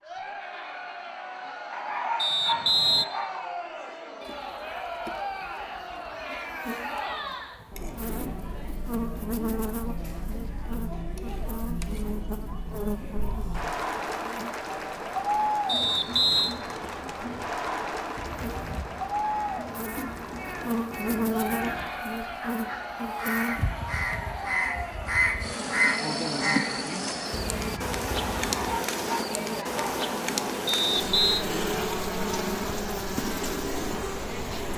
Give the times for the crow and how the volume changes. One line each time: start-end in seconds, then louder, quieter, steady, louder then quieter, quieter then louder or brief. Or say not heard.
18.1-28.8 louder then quieter.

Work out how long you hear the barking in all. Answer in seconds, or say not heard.
3 s.